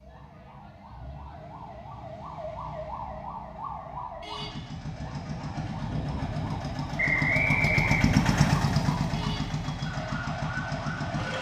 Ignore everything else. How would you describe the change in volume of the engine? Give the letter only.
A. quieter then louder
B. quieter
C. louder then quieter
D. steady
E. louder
C.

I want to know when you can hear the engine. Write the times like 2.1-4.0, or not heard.
4.2-11.3.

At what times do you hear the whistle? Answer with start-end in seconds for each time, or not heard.
7.0-8.5.